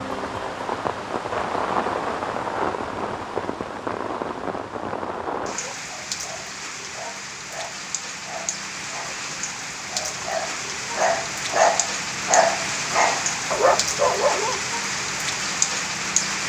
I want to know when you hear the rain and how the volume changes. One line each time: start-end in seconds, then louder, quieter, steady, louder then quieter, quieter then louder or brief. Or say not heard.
0.0-16.4 quieter then louder.